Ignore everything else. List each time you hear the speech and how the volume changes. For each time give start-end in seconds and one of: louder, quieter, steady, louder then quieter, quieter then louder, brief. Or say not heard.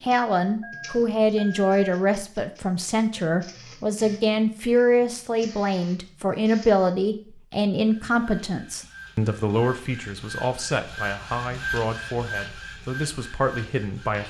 0.0-14.2 quieter.